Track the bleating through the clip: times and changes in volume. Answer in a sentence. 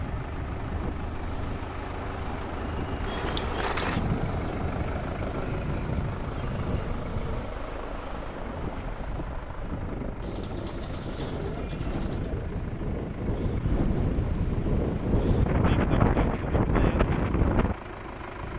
The bleating can't be heard in this clip.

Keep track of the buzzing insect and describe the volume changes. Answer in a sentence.
The loudness of the buzzing insect goes down, then up.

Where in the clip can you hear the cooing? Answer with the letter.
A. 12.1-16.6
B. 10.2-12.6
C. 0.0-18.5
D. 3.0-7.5
B.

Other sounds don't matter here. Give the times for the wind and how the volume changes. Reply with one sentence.
You can hear the wind from 0.0 to 18.5 s, getting louder.